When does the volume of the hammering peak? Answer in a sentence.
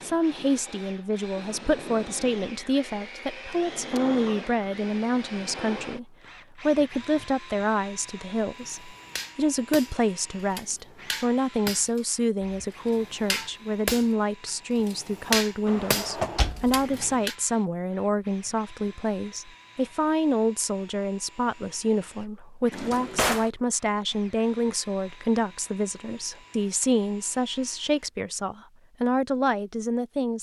The loudest moment of the hammering is at 15 seconds.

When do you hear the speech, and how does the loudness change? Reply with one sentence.
The speech can be heard from 0.0 to 30.3 s, at a steady volume.